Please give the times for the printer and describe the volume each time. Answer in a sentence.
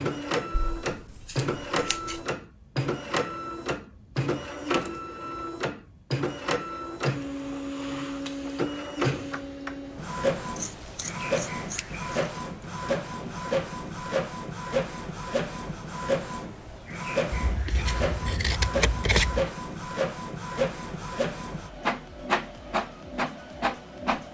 You can hear the printer from 0.0 to 24.2 s, at a steady volume.